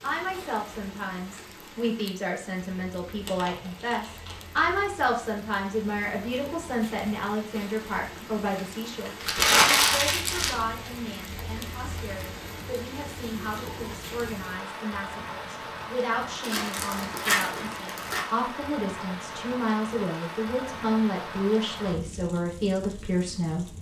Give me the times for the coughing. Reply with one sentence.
The coughing can't be heard in this clip.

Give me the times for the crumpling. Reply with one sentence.
The crumpling can be heard from 3.2 to 4.7 s, from 9.2 to 10.6 s and from 16.4 to 18.2 s.